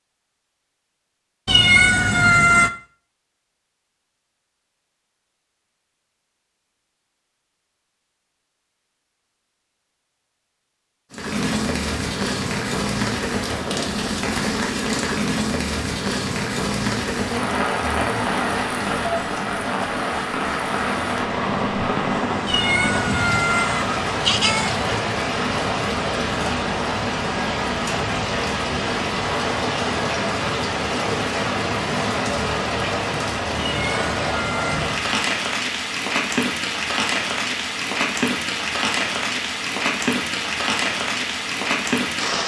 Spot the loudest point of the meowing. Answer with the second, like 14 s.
2 s.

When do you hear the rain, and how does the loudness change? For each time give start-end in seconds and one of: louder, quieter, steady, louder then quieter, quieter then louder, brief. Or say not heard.
11.1-42.4 steady.